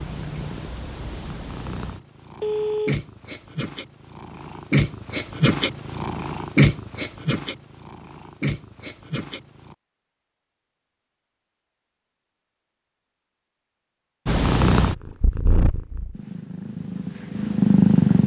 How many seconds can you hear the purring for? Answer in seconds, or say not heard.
14 s.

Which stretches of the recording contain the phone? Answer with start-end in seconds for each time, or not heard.
2.4-3.0.